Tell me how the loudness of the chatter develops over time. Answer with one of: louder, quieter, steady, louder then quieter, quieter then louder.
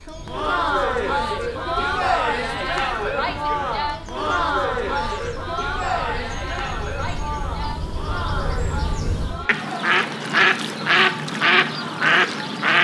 quieter.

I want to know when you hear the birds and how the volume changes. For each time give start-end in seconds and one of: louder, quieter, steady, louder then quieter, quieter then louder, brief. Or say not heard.
0.0-12.8 louder.